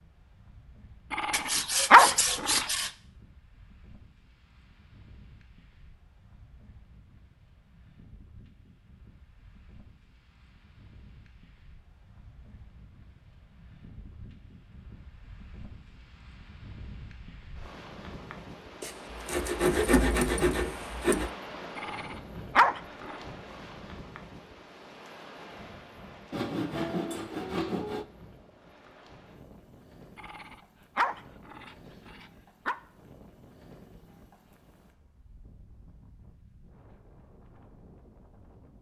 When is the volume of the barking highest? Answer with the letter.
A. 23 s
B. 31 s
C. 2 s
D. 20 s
C.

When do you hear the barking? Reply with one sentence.
You can hear the barking from 1.1 to 2.6 s, from 21.8 to 23.2 s and from 30.1 to 32.8 s.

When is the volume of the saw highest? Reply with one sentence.
The volume of the saw peaks at 20 seconds.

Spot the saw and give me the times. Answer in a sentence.
You can hear the saw from 1.3 to 2.9 s, from 18.8 to 21.3 s and from 26.3 to 28.1 s.